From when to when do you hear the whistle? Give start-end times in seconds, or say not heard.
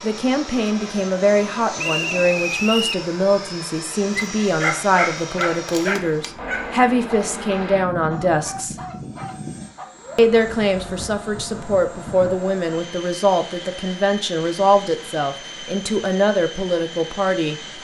1.8-3.0.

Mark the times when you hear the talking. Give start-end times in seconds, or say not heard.
0.0-8.8, 10.2-17.8.